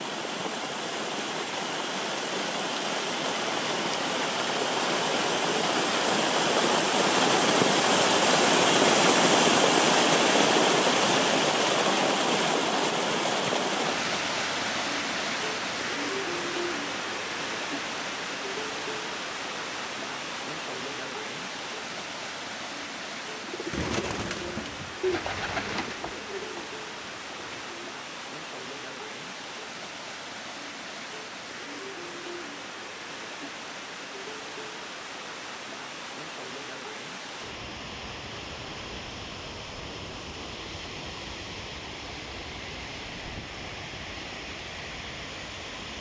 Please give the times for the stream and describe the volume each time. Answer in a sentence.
You can hear the stream from 0.0 to 45.9 s, getting quieter.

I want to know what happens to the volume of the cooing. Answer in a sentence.
The volume of the cooing goes down.